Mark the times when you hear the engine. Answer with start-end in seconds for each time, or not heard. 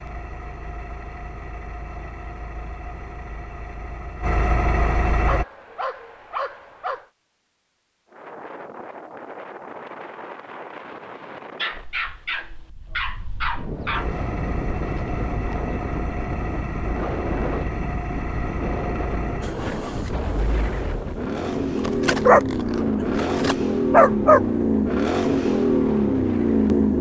0.0-5.5, 13.9-26.9.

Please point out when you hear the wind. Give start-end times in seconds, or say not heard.
8.1-26.9.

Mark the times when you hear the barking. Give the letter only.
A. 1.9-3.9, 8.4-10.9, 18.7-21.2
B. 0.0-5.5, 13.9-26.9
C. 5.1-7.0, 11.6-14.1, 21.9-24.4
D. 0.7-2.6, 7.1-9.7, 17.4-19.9
C.